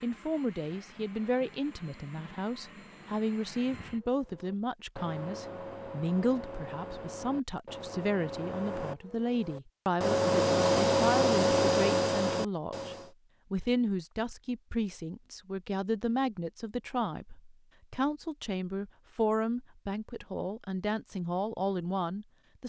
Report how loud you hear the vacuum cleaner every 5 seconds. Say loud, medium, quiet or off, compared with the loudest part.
quiet, quiet, loud, off, off.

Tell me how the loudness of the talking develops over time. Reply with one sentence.
The volume of the talking stays about the same.